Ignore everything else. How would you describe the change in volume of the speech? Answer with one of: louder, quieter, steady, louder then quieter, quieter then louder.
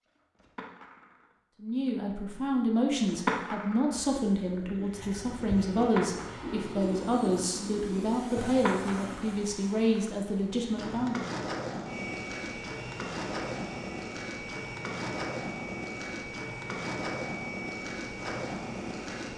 steady.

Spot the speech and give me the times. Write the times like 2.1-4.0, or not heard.
1.6-11.2.